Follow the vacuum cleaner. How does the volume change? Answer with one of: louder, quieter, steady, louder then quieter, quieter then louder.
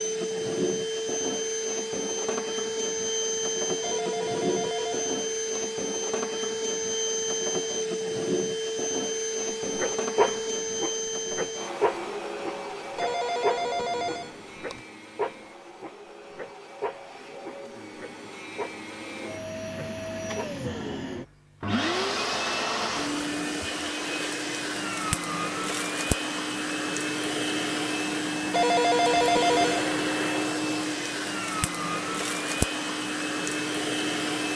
quieter then louder.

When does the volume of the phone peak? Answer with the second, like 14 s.
29 s.